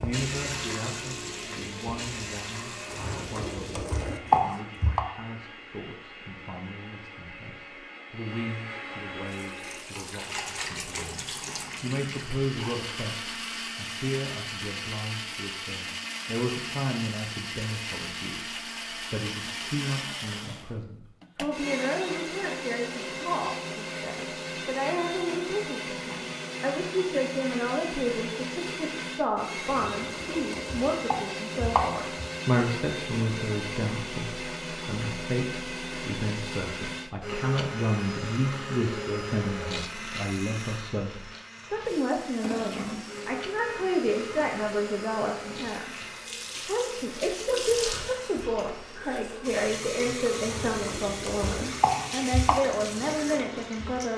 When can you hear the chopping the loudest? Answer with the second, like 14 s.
4 s.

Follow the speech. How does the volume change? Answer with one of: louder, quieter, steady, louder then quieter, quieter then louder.
louder.